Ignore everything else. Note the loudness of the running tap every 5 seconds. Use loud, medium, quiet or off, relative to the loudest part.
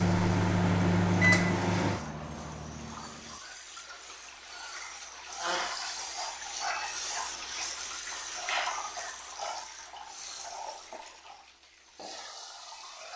medium, loud, medium.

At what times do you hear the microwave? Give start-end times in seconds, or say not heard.
0.0-3.4.